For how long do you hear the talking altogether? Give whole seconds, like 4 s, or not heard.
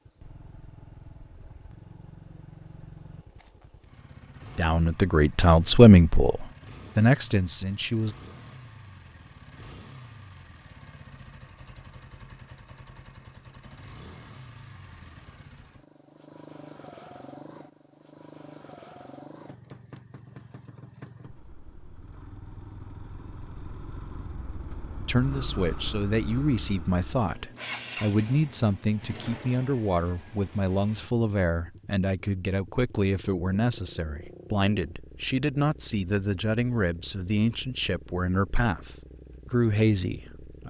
19 s.